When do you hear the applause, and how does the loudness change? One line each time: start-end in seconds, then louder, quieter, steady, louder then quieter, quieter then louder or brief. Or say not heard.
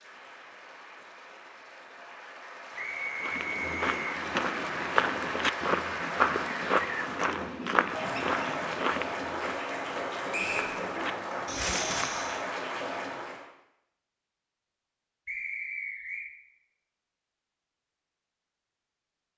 0.0-13.5 louder.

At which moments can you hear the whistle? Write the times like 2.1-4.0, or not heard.
2.8-4.2, 10.3-10.8, 15.2-16.2.